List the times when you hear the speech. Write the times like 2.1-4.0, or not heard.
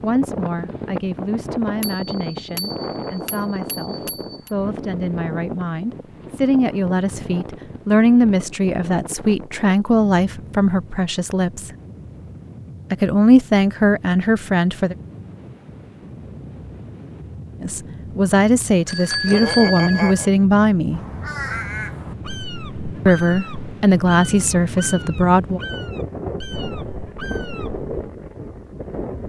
0.0-11.7, 12.9-14.9, 17.6-21.0, 23.1-25.6.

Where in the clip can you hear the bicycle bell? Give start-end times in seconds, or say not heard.
1.8-4.5, 18.9-20.3.